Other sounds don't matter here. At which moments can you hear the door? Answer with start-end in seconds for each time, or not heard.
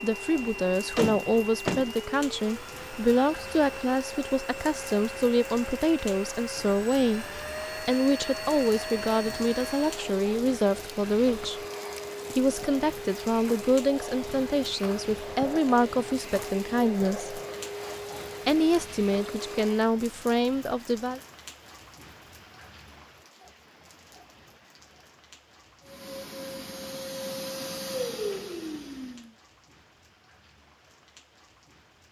0.9-1.9.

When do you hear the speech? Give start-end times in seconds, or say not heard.
0.0-11.6, 12.3-17.4, 18.4-21.2.